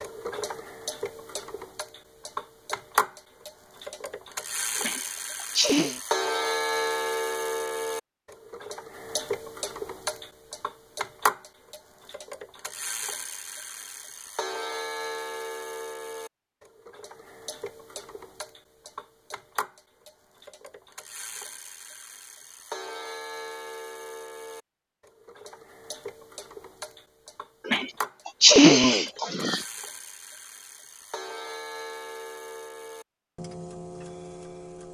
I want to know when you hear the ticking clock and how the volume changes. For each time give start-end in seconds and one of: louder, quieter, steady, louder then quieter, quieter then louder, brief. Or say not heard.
0.0-34.8 quieter.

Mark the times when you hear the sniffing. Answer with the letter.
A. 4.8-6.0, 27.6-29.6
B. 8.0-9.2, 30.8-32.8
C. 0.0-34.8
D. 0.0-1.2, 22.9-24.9
A.